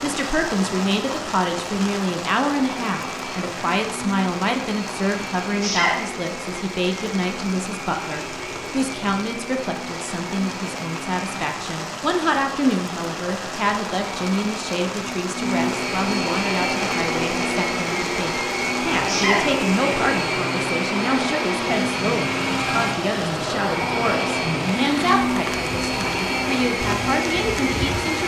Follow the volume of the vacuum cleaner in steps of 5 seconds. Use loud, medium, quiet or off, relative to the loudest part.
medium, medium, medium, loud, loud, loud.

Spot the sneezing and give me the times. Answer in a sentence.
The sneezing can be heard from 5.6 to 6.0 s and from 19.1 to 19.5 s.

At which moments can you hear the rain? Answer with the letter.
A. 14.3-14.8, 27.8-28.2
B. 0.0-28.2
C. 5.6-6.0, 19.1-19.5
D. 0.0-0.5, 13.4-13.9
B.